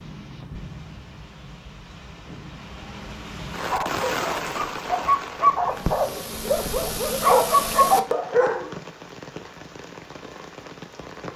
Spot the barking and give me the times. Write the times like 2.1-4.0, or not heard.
3.5-8.8.